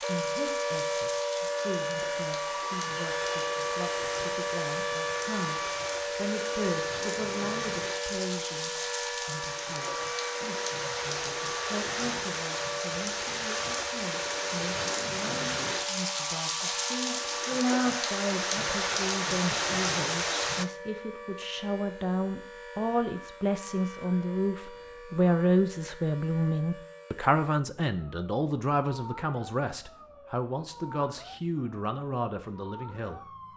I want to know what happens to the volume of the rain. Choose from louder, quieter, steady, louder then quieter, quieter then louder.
louder.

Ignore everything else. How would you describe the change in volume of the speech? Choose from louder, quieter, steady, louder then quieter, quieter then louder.
louder.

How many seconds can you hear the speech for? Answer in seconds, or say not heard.
33 s.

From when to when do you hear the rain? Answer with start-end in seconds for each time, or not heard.
0.0-20.6.